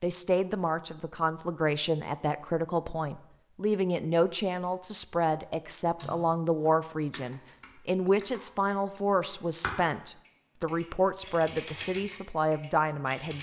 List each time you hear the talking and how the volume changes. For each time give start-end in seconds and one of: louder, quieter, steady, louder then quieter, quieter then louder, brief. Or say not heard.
0.0-13.3 steady.